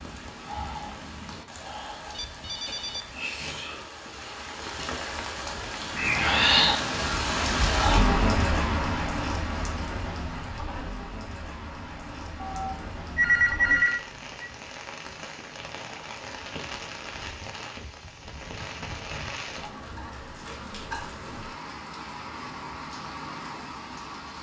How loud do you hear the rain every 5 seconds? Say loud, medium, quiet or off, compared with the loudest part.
quiet, loud, quiet, quiet, quiet.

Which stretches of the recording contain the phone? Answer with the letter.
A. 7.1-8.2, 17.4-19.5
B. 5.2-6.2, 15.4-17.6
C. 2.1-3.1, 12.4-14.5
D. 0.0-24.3
C.